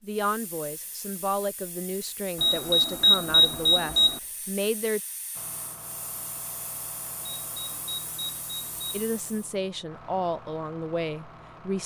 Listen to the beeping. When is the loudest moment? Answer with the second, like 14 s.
3 s.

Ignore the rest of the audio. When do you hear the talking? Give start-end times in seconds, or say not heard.
0.0-5.0, 8.9-11.8.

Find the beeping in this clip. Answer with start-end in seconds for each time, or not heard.
2.4-4.2, 7.3-9.1.